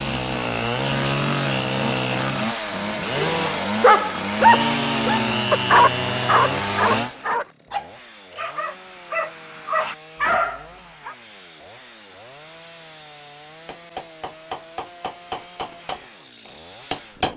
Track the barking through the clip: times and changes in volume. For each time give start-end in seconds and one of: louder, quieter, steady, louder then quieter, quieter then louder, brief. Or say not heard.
3.3-11.2 quieter then louder.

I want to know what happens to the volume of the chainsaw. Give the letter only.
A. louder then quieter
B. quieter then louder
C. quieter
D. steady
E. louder
C.